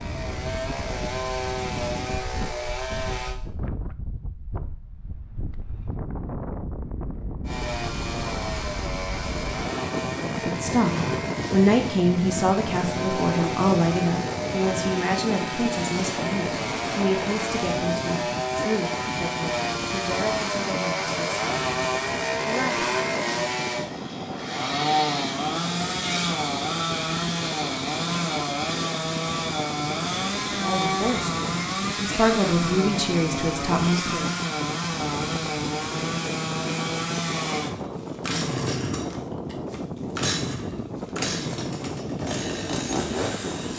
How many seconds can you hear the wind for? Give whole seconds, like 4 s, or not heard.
44 s.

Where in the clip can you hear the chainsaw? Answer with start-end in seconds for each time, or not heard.
0.0-3.4, 7.5-43.7.